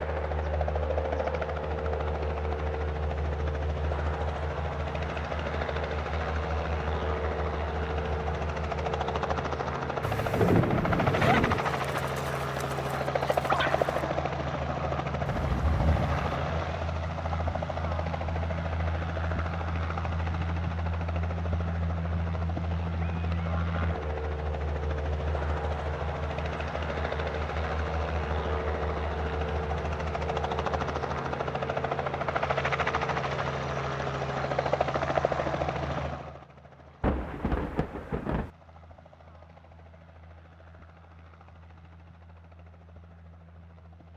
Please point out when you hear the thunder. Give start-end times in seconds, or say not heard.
10.0-11.6, 15.2-16.4, 37.0-38.5.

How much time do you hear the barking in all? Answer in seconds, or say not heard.
3 s.